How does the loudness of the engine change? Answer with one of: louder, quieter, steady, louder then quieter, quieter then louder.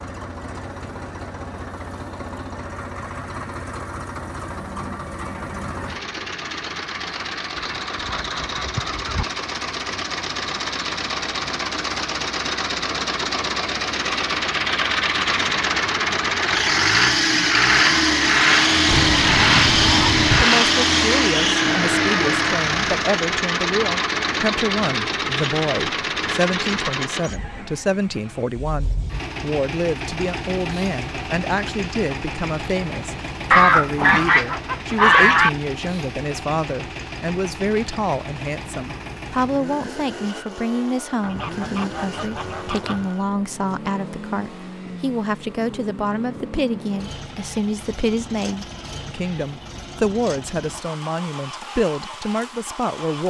louder then quieter.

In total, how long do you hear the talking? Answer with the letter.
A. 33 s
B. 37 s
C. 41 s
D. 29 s
A.